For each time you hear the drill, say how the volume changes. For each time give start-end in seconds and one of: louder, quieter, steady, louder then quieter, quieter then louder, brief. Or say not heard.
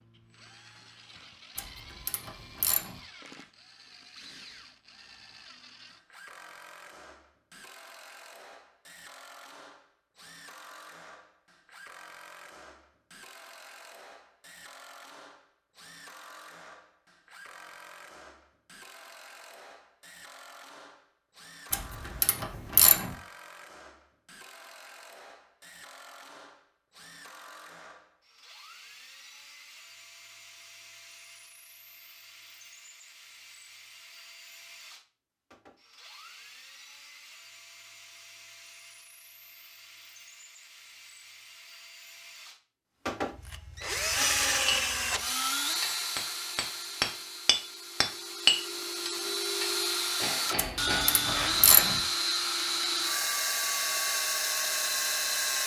0.0-55.6 louder.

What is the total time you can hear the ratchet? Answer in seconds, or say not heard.
4 s.